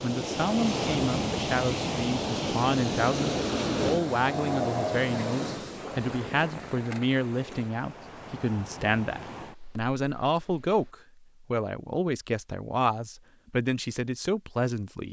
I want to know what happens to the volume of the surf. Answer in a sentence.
The volume of the surf goes down.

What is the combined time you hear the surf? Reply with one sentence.
The surf can be heard for 11 seconds in total.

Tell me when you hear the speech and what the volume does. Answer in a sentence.
You can hear the speech from 0.0 to 15.0 s, at a steady volume.